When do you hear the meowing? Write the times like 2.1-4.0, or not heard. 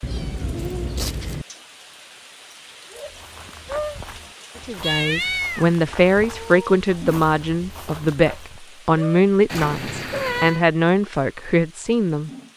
0.0-1.4, 4.8-6.7, 9.4-10.7.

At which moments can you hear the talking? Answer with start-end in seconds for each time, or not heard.
4.7-12.3.